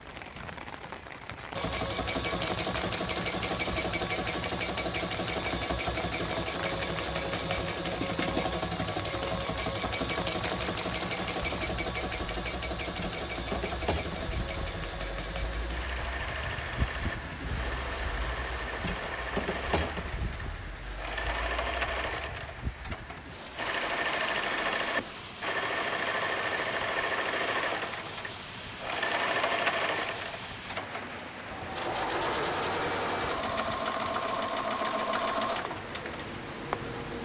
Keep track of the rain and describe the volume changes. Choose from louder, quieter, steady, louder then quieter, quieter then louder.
steady.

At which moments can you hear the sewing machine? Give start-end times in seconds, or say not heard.
1.5-37.1.